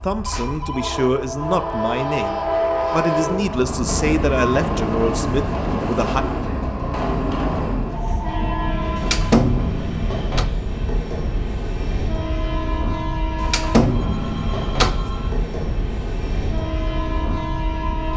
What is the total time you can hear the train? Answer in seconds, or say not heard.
18 s.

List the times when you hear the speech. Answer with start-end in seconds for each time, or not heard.
0.0-6.2.